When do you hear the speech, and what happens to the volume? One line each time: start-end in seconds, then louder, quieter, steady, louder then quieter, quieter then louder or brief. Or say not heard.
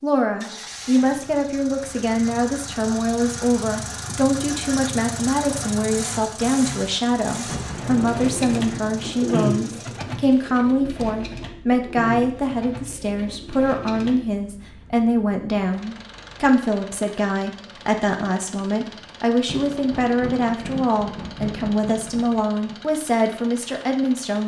0.0-24.4 steady.